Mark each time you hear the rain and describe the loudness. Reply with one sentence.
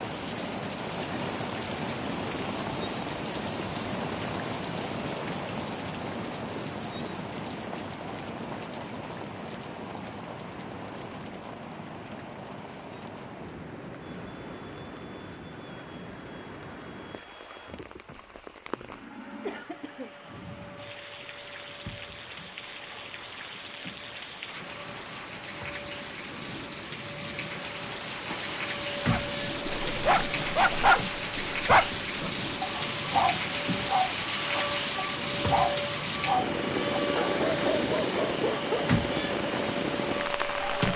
The rain can be heard from 0.0 to 40.9 s, getting quieter then louder.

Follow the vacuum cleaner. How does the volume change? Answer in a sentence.
The volume of the vacuum cleaner goes up.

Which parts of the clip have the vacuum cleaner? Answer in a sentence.
The vacuum cleaner can be heard from 14.0 to 40.9 s.